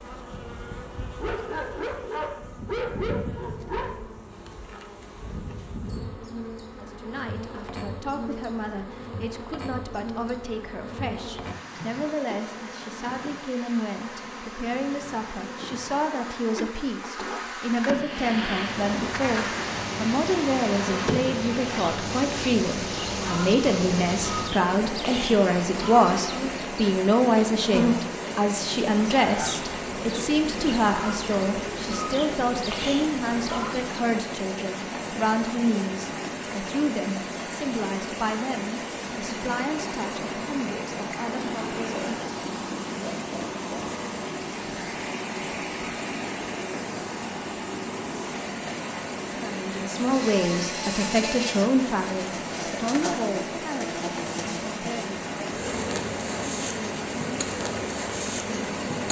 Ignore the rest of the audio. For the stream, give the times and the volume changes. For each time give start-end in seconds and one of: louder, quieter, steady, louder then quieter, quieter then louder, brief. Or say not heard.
17.8-59.0 steady.